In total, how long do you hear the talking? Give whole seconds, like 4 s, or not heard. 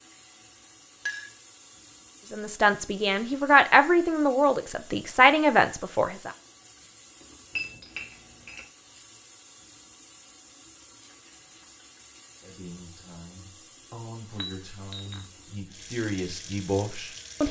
9 s.